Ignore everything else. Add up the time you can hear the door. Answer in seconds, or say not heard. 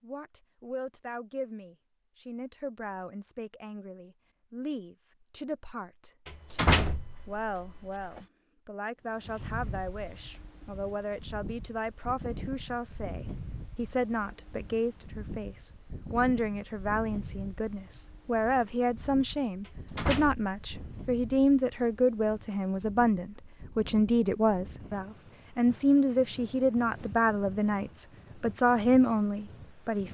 3 s.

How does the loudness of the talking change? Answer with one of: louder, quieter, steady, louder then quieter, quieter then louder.
louder.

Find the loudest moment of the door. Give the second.
7 s.